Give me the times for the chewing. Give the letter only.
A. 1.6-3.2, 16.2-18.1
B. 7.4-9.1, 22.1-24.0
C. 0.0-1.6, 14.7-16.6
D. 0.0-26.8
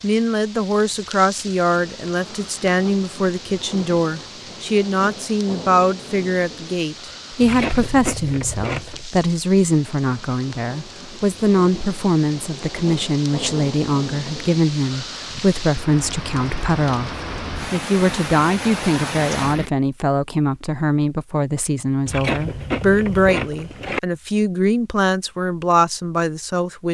B.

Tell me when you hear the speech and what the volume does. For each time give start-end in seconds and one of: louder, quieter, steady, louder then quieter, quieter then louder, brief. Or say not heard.
0.0-26.8 steady.